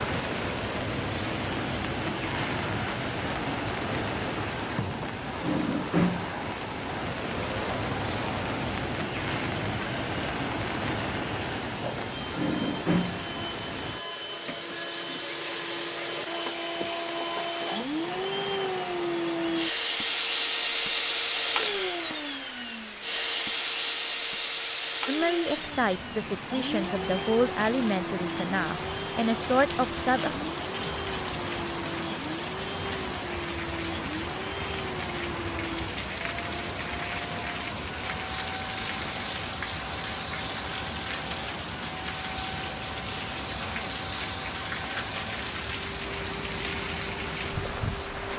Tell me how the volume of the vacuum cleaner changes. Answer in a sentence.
The volume of the vacuum cleaner goes up, then down.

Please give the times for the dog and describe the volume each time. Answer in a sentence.
You can't hear the dog here.